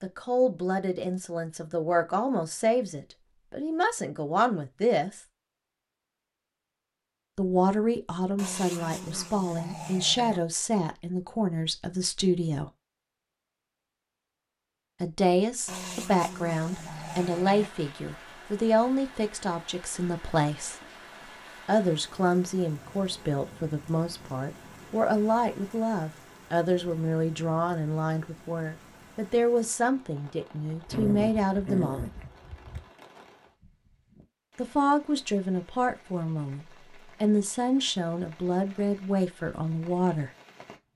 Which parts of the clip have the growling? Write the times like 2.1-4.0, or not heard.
8.3-10.4, 15.7-17.7, 30.9-32.9.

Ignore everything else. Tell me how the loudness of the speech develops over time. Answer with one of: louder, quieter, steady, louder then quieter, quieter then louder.
steady.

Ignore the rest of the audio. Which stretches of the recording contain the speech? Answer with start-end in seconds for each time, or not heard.
0.0-5.2, 7.3-12.7, 15.0-20.8, 21.6-32.0, 34.5-40.3.